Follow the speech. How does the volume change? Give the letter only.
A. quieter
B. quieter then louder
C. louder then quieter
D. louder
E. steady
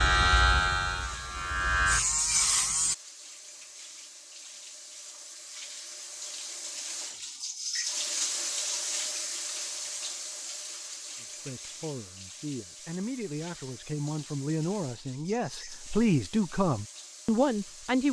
D.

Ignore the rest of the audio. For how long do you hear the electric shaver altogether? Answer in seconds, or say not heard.
3 s.